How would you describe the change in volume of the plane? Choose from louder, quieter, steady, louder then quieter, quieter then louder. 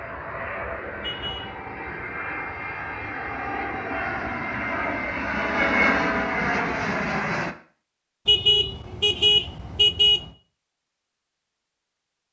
louder.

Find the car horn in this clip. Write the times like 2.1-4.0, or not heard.
1.0-1.6, 5.3-6.5, 8.2-10.3.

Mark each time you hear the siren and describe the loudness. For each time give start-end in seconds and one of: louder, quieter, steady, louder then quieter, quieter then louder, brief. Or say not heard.
not heard.